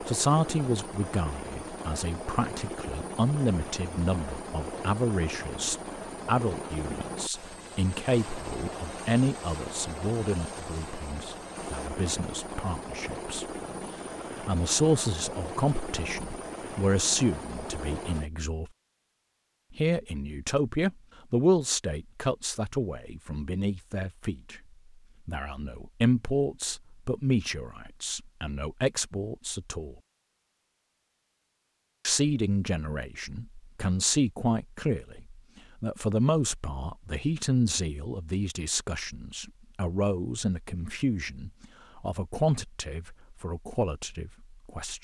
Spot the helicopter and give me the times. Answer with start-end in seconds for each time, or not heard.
0.0-18.3.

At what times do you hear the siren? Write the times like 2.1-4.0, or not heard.
not heard.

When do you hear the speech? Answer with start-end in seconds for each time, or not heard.
0.0-18.7, 19.7-24.6, 25.2-29.9, 32.0-45.0.